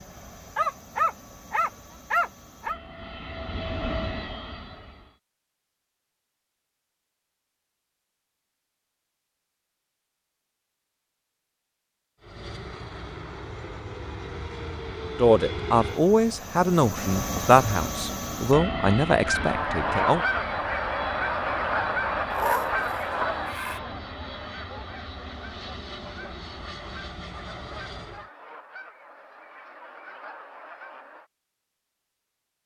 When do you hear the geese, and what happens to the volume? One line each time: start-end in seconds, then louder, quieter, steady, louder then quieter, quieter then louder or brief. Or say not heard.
19.2-31.3 quieter.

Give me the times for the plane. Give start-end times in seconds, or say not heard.
0.0-5.2, 12.2-28.3.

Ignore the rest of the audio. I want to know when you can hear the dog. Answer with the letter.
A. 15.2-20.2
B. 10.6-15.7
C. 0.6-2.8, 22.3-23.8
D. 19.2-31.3
C.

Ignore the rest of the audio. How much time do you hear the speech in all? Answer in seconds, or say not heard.
5 s.